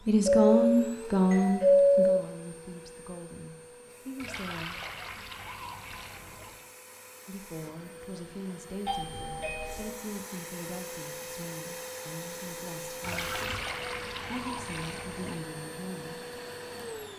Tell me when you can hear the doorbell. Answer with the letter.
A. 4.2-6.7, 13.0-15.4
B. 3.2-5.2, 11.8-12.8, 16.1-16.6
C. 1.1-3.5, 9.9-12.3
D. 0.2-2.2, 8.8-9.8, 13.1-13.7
D.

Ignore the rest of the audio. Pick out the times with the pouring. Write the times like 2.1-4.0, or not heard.
4.2-6.7, 13.0-15.4.